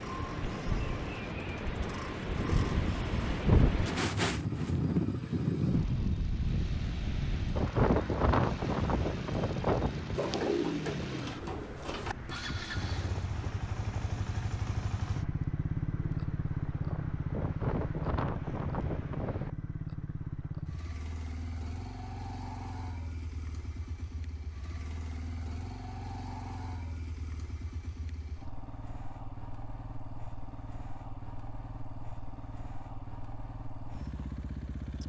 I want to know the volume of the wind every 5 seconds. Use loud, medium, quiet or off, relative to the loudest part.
loud, loud, quiet, medium, off, off, off.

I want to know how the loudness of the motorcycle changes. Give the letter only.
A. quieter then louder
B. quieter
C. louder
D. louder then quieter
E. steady
D.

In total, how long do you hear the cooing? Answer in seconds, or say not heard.
2 s.